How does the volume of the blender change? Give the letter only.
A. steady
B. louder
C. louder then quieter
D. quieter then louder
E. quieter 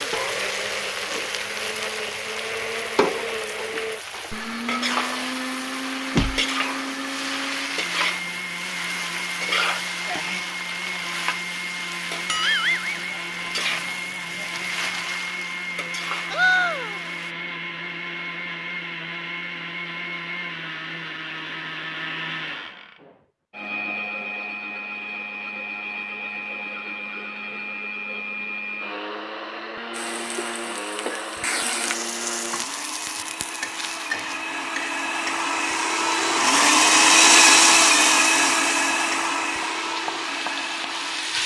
B.